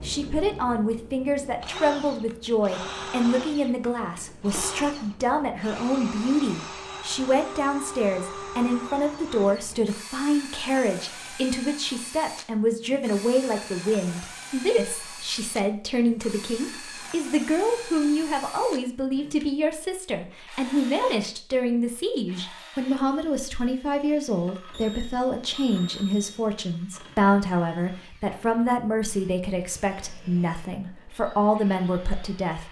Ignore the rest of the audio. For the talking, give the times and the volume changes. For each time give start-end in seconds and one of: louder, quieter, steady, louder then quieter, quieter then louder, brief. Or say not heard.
0.0-32.6 steady.